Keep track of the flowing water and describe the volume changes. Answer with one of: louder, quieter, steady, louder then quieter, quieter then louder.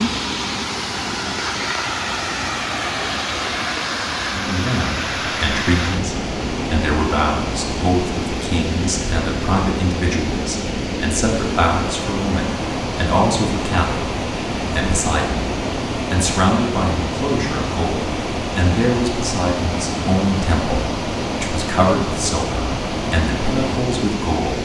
steady.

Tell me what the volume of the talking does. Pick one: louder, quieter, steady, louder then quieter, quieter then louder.
steady.